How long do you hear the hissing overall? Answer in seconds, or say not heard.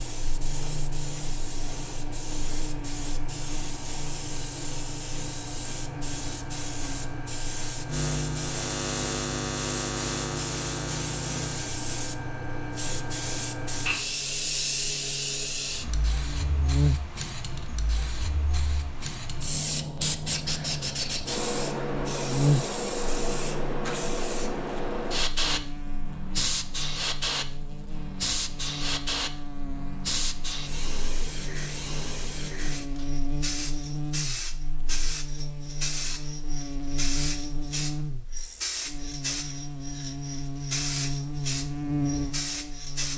43 s.